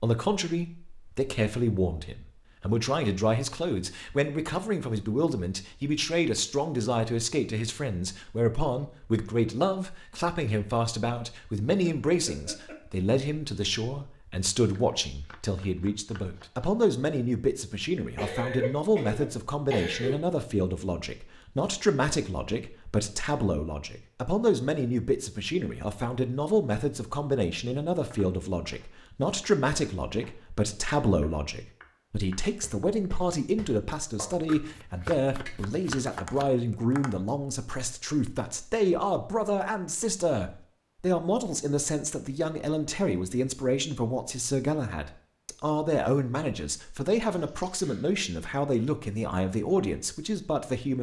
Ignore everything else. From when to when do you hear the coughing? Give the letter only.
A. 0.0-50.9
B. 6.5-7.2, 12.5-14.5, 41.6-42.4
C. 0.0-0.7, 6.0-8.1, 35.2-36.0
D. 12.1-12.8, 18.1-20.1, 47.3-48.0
D.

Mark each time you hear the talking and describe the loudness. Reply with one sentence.
You can hear the talking from 0.0 to 50.9 s, at a steady volume.